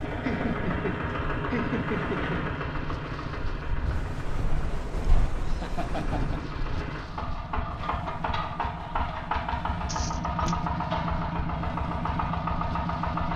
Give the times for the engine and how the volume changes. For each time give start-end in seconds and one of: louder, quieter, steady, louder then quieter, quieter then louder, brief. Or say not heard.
0.0-13.3 quieter then louder.